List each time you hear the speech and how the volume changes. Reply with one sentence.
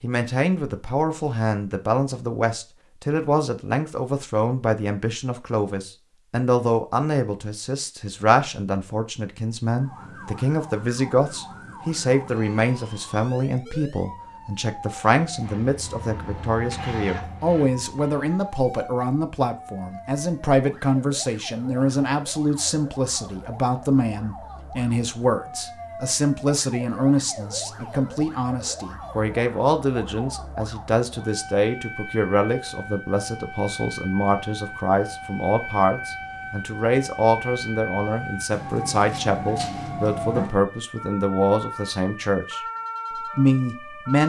The speech can be heard from 0.0 to 42.6 s, at a steady volume; and briefly from 43.4 to 44.2 s.